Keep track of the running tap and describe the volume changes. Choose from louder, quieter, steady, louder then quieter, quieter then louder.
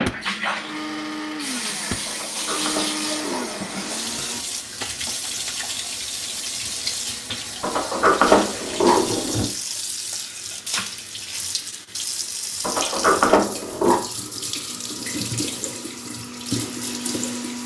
steady.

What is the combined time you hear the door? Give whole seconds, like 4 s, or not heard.
5 s.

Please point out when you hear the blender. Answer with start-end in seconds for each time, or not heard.
0.0-4.5, 14.7-17.6.